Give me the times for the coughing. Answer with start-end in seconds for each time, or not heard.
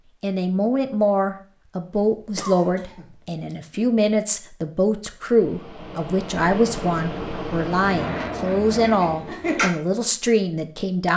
1.9-3.5, 8.7-9.7.